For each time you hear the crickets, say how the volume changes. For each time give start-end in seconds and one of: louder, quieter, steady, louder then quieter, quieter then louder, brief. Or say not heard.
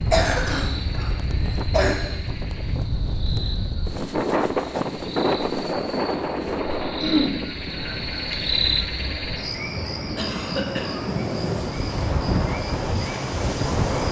0.0-14.0 louder then quieter.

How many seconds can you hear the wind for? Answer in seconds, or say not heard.
14 s.